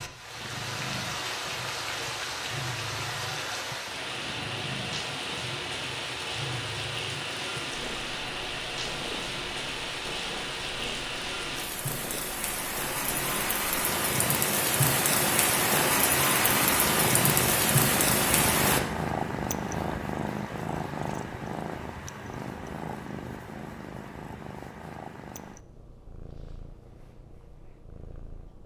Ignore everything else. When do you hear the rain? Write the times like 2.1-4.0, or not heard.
0.0-18.8.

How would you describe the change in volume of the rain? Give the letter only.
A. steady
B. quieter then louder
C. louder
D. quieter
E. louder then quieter
C.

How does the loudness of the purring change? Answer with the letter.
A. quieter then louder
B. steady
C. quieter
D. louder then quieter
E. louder
D.